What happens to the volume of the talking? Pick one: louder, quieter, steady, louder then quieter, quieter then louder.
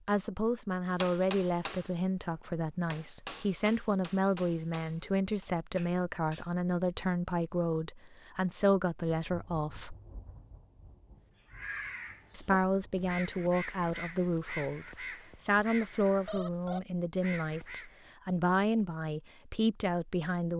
steady.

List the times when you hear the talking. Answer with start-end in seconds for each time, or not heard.
0.1-9.9, 12.3-20.5.